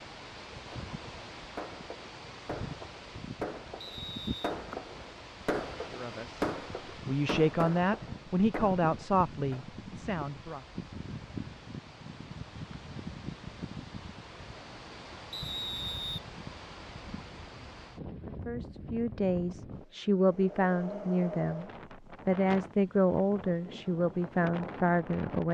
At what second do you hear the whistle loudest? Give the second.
16 s.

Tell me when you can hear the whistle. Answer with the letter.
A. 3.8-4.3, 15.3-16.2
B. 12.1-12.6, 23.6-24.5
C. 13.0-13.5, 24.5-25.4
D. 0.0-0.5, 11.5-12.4
A.